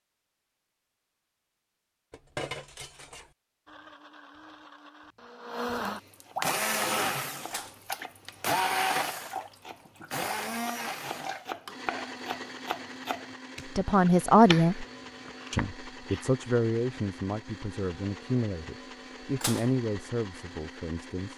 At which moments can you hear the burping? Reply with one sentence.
You can't hear the burping here.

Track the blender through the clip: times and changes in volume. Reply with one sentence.
The blender can be heard from 3.6 to 21.3 s, getting quieter.